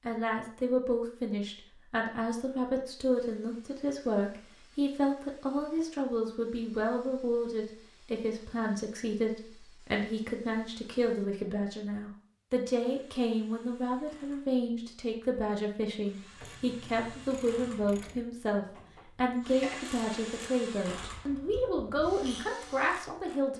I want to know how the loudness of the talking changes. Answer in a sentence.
The loudness of the talking stays about the same.